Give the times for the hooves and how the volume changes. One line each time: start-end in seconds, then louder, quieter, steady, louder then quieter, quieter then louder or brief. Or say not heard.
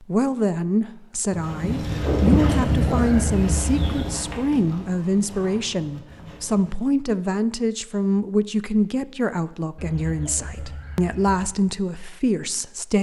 1.3-7.0 quieter.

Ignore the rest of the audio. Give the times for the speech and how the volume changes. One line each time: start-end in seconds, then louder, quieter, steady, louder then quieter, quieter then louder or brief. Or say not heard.
0.0-12.9 steady.